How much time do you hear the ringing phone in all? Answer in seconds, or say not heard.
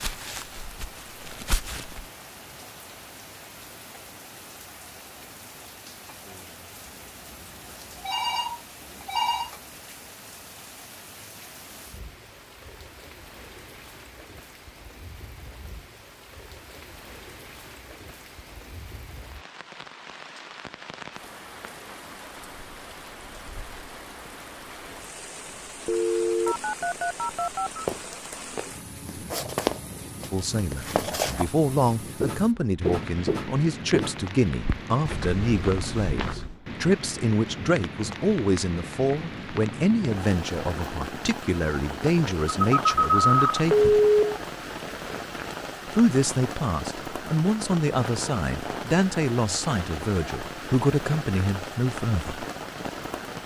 5 s.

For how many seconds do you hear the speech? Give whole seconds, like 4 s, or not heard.
20 s.